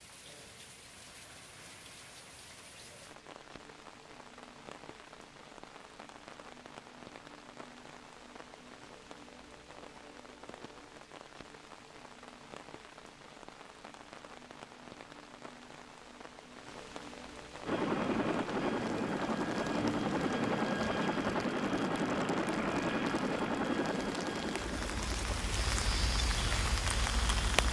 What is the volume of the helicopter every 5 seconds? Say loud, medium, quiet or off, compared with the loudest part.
off, off, off, loud, loud, quiet.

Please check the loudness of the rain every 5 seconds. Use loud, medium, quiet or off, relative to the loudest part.
quiet, quiet, quiet, quiet, medium, loud.